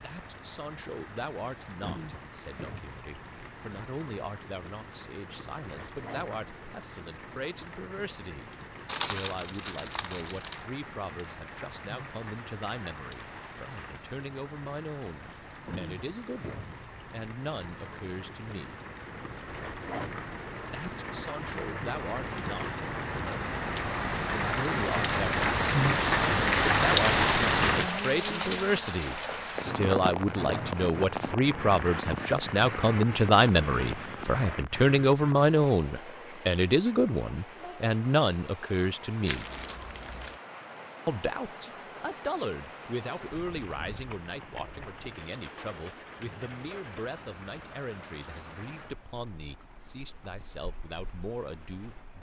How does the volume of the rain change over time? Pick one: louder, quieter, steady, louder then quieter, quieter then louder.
louder then quieter.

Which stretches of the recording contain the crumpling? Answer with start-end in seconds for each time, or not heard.
8.8-10.7, 39.2-40.4.